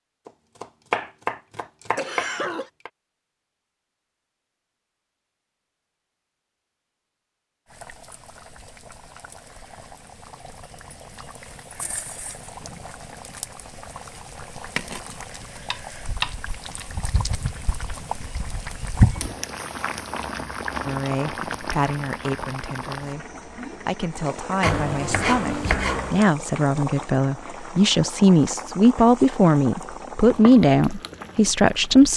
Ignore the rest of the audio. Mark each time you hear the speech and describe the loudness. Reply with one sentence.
You can hear the speech from 20.9 to 32.1 s, getting louder.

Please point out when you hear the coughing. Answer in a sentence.
You can hear the coughing from 1.9 to 2.7 s.